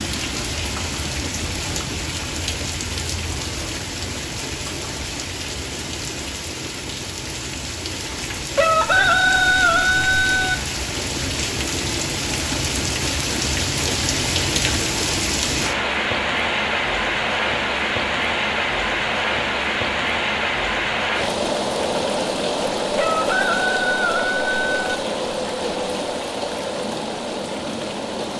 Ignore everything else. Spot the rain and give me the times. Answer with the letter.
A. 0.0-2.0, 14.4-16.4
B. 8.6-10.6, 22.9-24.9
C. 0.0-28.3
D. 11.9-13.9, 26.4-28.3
C.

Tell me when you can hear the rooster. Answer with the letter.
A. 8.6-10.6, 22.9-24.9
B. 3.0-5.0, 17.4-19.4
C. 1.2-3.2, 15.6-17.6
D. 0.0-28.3
A.